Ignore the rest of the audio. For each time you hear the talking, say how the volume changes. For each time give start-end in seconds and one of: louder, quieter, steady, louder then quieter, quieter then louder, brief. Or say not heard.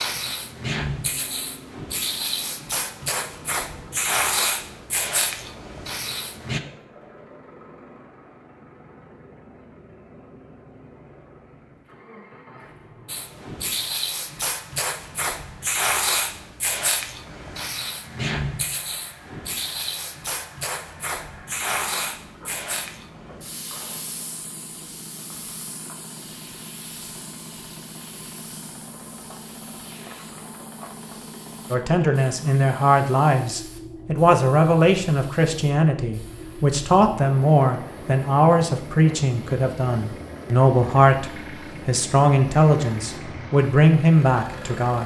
31.7-45.0 steady.